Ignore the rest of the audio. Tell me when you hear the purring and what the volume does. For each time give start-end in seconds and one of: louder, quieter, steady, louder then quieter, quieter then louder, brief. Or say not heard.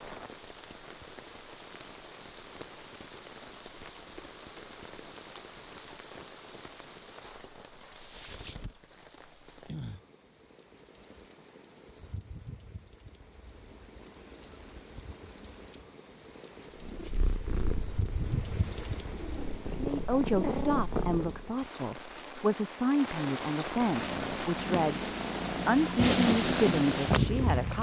16.8-21.6 quieter then louder
23.7-27.7 louder.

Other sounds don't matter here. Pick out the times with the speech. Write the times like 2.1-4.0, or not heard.
19.8-27.7.